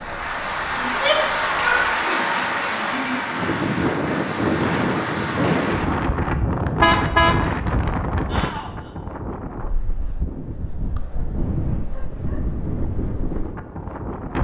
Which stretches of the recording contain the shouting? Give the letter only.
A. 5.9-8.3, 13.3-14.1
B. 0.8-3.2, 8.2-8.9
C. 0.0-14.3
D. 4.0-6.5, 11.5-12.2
B.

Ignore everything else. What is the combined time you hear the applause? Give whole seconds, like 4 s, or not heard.
6 s.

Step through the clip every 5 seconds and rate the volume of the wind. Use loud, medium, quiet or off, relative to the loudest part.
loud, loud, medium.